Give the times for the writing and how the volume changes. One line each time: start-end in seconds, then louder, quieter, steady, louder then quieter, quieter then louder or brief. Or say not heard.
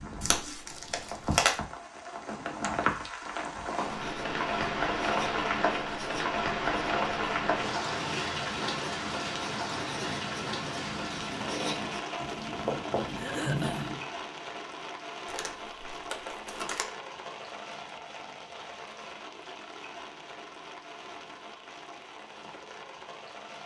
3.8-14.0 louder.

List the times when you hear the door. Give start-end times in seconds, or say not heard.
not heard.